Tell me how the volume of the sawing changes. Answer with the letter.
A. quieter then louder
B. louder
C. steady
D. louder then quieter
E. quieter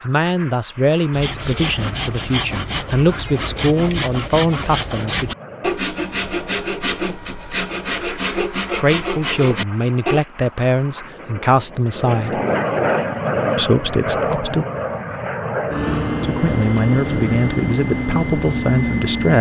C.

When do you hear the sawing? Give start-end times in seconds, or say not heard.
1.1-10.2.